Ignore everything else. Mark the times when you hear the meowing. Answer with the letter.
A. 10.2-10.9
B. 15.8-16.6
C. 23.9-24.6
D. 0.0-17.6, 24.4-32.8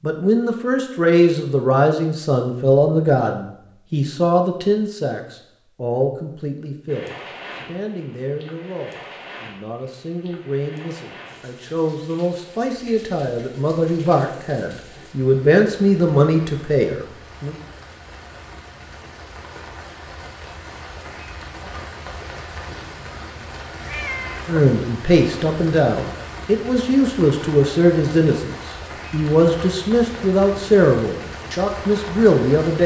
C.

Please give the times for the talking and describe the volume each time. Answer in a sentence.
The talking can be heard from 0.0 to 17.6 s, getting quieter then louder; and from 24.4 to 32.8 s, at a steady volume.